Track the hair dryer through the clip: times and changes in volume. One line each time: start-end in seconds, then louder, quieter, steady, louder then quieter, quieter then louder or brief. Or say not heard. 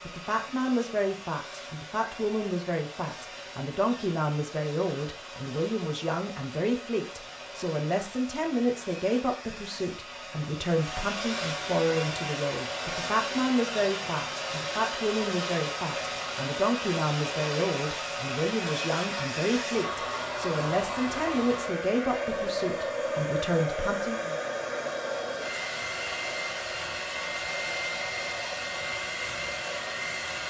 0.0-30.4 louder.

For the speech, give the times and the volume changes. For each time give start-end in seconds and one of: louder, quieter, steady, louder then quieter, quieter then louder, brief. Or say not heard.
0.1-24.4 steady.